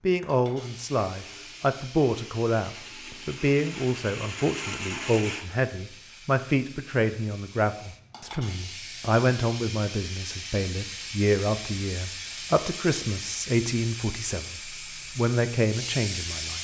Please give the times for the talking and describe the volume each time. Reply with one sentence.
The talking can be heard from 0.0 to 16.5 s, at a steady volume.